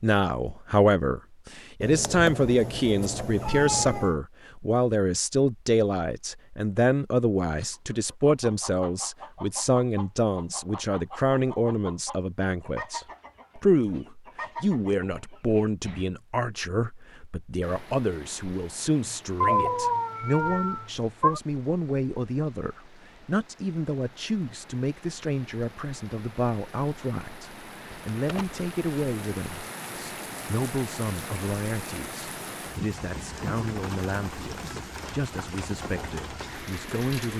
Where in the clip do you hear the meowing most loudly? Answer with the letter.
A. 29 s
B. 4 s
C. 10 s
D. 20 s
D.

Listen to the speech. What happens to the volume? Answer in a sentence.
The loudness of the speech goes down.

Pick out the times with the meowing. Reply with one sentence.
You can hear the meowing from 1.8 to 4.2 s, from 19.4 to 21.4 s and from 27.9 to 28.6 s.